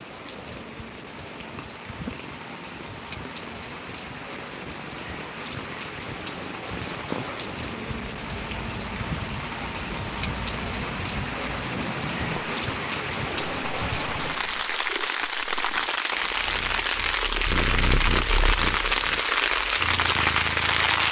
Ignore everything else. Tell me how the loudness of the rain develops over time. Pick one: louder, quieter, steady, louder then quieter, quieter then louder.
louder.